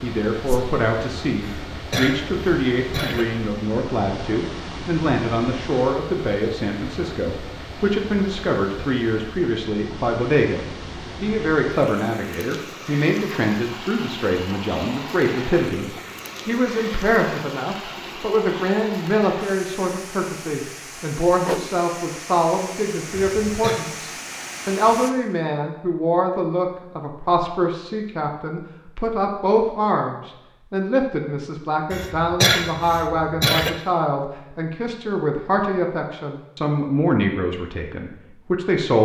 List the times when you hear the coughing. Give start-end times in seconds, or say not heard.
1.4-3.2, 23.1-23.8, 31.9-33.8.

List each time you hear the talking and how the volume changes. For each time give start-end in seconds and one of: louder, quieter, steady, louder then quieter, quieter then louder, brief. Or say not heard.
0.0-39.0 steady.